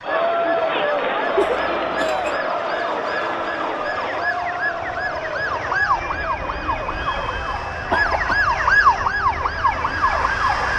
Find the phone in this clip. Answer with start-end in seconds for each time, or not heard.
not heard.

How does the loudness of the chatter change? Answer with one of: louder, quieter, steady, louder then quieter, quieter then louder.
quieter.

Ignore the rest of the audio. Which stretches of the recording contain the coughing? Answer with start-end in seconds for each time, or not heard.
1.4-2.4, 7.9-8.6.